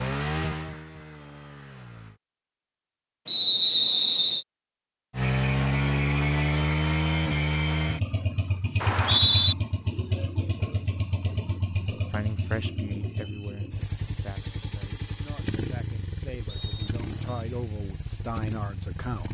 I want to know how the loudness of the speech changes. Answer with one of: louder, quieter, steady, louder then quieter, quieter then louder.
quieter then louder.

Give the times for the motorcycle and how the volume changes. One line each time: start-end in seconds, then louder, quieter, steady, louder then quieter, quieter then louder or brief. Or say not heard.
0.0-2.2 brief
5.1-19.2 quieter.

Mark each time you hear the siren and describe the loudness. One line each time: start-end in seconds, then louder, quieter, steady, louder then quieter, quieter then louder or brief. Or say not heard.
not heard.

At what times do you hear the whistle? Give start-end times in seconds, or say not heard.
3.2-4.5, 8.8-9.6, 16.4-17.4.